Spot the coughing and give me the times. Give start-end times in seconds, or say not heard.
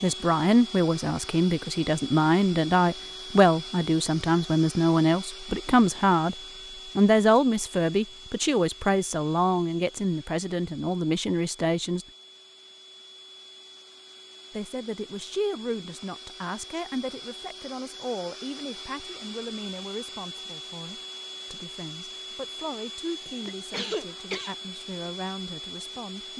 23.2-24.6.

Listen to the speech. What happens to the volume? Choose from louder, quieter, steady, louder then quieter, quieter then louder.
quieter.